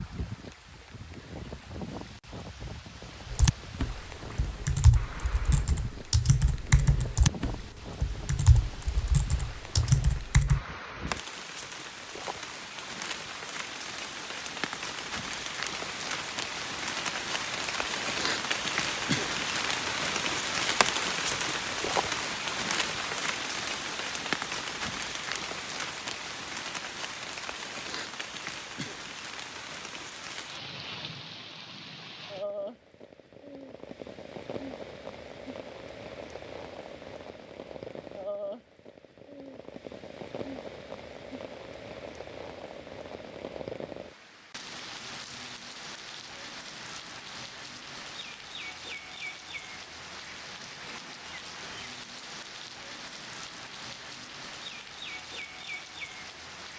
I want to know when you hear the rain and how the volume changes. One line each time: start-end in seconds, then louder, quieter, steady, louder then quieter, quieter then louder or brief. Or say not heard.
0.0-56.7 louder then quieter.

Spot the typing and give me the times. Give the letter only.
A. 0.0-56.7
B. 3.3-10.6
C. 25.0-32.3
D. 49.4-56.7
B.